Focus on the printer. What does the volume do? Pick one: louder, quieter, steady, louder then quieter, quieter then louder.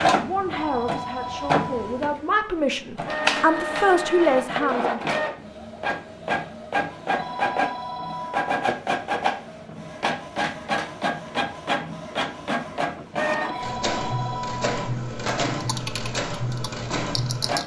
steady.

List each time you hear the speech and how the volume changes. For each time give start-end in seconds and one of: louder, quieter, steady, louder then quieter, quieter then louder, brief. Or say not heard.
0.1-5.0 louder.